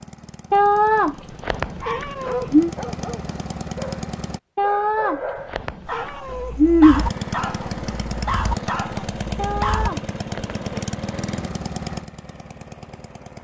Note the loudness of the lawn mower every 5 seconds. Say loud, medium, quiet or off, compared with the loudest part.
medium, loud, loud.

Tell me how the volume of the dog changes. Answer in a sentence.
The volume of the dog goes up.